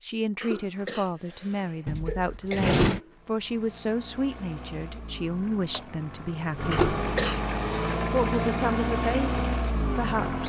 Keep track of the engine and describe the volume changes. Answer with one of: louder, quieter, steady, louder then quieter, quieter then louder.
louder.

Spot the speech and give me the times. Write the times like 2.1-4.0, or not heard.
0.0-6.8, 8.1-10.4.